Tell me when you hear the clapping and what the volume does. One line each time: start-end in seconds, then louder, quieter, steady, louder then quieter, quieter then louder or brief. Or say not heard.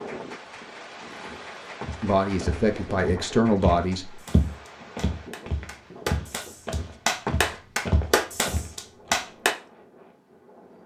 0.1-9.6 louder.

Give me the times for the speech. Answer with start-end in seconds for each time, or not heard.
2.0-4.2.